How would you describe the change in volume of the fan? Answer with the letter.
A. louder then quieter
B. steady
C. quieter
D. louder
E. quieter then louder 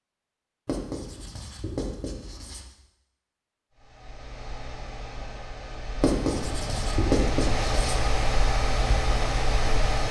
D.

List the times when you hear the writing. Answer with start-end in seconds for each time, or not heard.
0.7-2.6, 6.0-8.0.